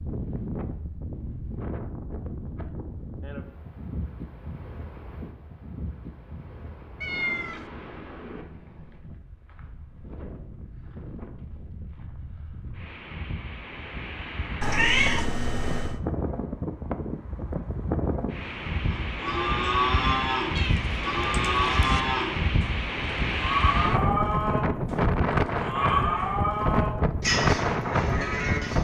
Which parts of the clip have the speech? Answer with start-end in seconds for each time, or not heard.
not heard.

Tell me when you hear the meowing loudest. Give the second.
15 s.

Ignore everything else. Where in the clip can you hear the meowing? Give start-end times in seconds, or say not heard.
7.0-7.7, 14.6-16.0, 20.6-22.0.